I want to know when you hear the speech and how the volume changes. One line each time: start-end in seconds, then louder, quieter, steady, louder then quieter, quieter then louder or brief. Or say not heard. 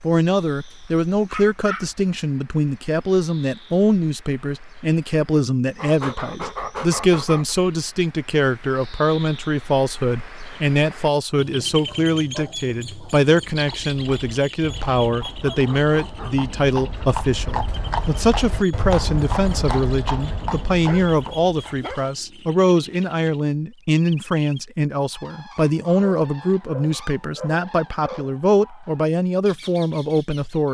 0.0-30.6 steady.